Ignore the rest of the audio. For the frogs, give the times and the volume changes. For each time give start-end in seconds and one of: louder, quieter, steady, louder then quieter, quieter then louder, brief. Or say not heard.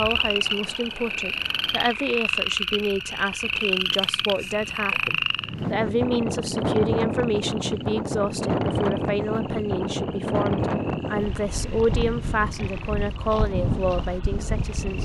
0.0-15.0 quieter.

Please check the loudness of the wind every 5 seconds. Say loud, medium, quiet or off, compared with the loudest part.
quiet, loud, loud.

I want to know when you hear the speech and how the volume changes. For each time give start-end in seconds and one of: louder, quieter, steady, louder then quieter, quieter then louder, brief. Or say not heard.
0.0-15.0 steady.